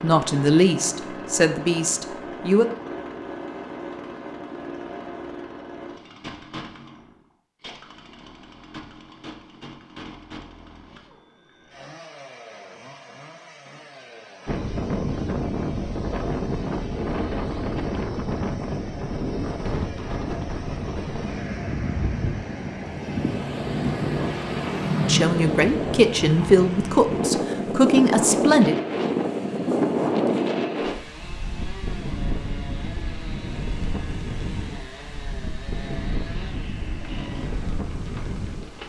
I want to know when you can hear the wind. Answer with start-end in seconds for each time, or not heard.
14.4-38.8.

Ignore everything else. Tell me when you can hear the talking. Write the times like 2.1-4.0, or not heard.
0.0-2.6, 25.0-28.8.